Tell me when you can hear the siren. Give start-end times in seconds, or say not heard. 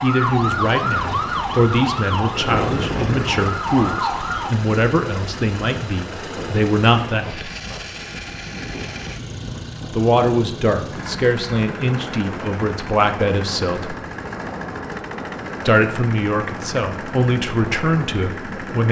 0.0-4.5.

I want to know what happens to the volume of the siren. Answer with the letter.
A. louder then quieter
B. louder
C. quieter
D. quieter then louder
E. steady
D.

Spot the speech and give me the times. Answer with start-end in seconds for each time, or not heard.
0.0-7.5, 9.9-13.9, 15.7-18.8.